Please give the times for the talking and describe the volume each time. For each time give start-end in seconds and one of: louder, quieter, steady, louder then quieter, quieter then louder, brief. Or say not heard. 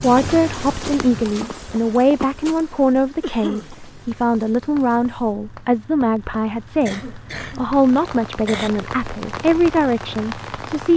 0.0-10.9 steady.